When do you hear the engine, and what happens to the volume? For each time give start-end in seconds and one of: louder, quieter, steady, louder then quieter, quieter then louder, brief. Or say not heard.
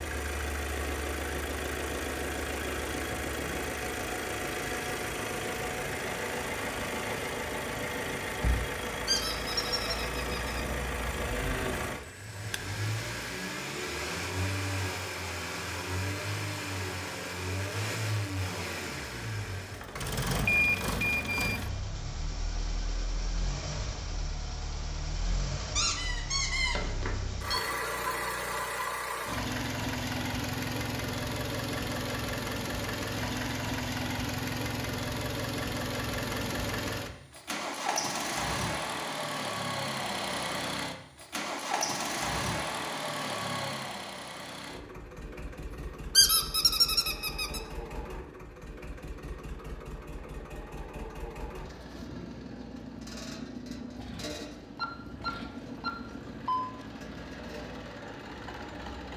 0.0-59.1 quieter.